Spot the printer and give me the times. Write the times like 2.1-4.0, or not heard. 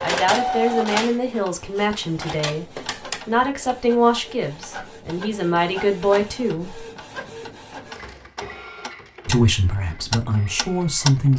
0.0-11.3.